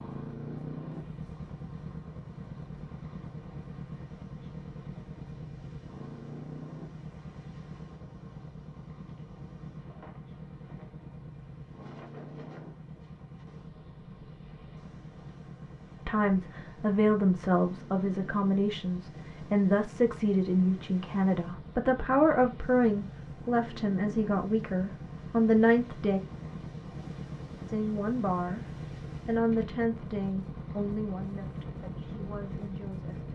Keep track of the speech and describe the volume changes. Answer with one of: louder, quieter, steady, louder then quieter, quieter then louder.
quieter.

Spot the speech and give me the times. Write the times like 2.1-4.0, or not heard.
16.1-26.2, 27.6-33.3.